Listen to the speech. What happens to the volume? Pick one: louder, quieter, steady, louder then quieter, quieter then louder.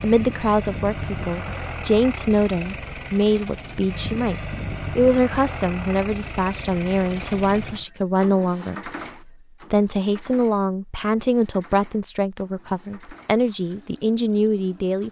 steady.